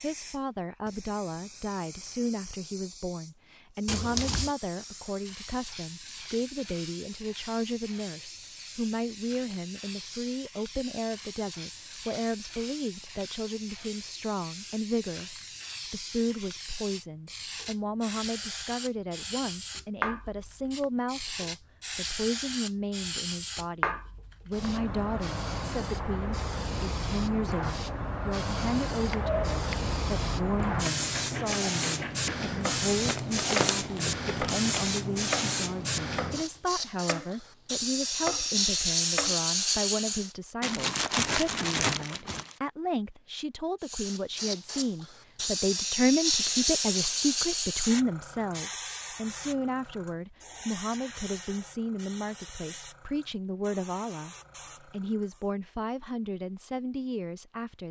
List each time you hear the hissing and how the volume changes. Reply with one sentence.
You can hear the hissing from 0.0 to 40.4 s, getting louder; and from 43.8 to 55.5 s, getting quieter.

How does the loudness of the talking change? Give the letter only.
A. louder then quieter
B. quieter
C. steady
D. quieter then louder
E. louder
C.